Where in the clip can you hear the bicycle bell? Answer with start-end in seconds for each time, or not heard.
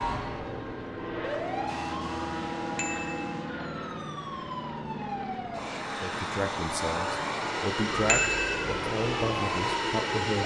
2.8-3.3, 8.1-8.6.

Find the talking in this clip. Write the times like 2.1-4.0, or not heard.
6.0-10.4.